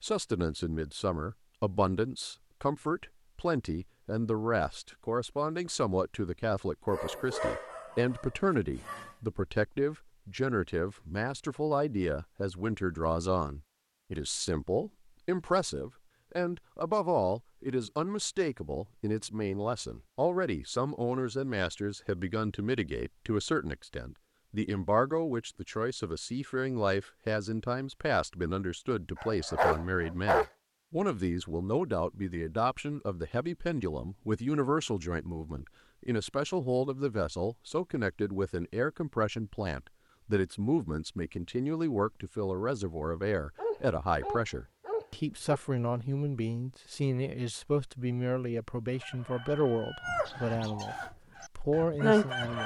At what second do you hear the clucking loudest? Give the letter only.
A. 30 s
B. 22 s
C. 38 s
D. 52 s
D.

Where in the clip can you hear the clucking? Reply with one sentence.
The clucking can be heard from 48.9 to 52.6 s.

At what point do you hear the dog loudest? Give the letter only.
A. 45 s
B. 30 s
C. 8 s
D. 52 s
B.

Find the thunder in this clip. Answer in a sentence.
The thunder can't be heard in this clip.